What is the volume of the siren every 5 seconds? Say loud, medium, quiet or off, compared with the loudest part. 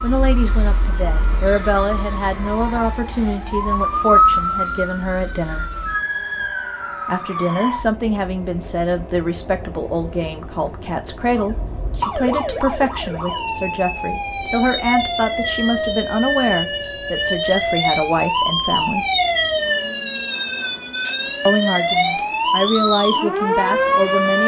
loud, medium, medium, loud, loud.